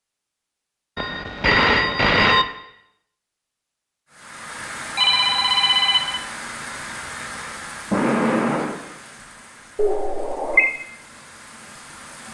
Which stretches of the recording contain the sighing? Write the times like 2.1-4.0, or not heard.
7.3-8.8.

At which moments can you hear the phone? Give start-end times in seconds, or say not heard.
0.9-2.5, 5.0-6.2, 9.8-10.8.